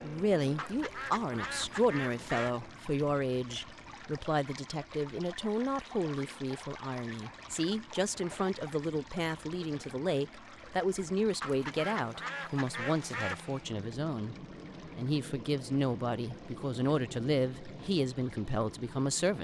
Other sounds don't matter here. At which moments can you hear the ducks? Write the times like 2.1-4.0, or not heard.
0.6-2.5, 11.4-13.4.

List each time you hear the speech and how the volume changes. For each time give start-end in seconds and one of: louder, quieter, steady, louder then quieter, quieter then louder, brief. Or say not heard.
0.0-19.3 steady.